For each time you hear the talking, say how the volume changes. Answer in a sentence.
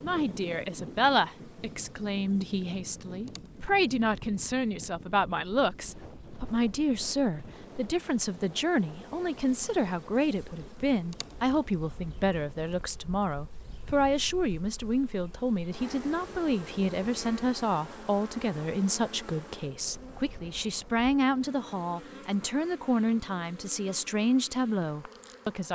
You can hear the talking from 0.0 to 25.7 s, at a steady volume.